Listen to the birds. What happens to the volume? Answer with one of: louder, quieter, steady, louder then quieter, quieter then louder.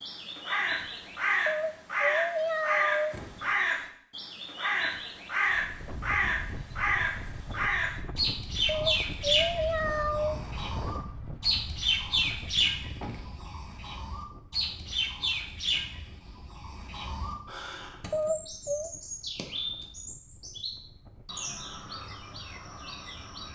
quieter.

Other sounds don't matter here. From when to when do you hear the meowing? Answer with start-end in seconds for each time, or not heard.
1.4-3.1, 8.7-10.4, 18.1-18.9.